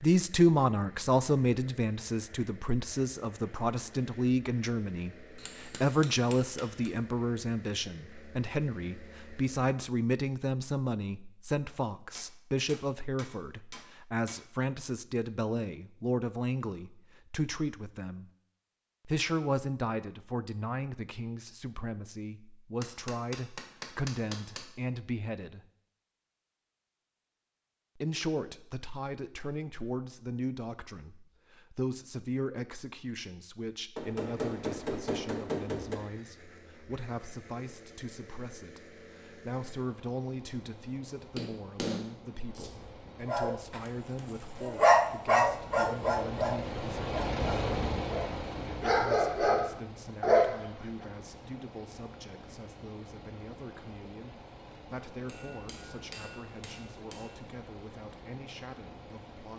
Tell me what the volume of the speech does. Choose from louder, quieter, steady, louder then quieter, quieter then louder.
quieter.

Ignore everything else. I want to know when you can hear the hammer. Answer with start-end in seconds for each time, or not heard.
5.3-6.9, 11.7-14.4, 22.8-24.6, 34.0-36.0, 41.4-42.7, 55.2-57.4.